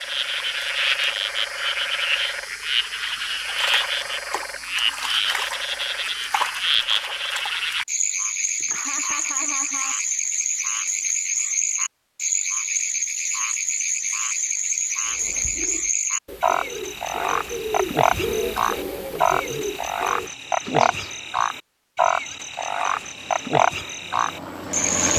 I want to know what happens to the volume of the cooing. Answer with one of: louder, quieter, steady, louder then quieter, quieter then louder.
louder then quieter.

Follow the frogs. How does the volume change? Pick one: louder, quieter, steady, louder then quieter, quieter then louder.
steady.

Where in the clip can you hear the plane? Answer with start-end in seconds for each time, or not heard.
23.0-25.1.